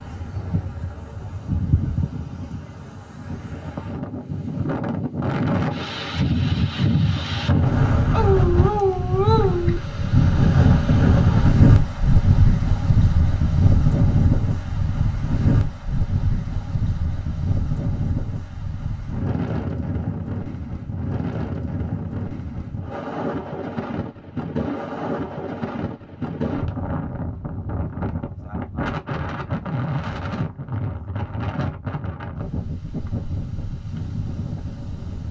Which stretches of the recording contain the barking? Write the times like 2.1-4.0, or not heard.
8.1-9.8.